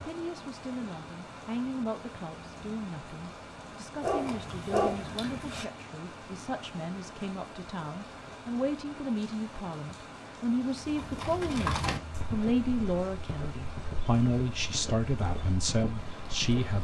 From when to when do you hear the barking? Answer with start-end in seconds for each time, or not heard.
4.0-5.7.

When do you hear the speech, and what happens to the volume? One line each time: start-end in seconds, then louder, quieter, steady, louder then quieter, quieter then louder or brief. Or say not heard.
0.0-16.7 louder.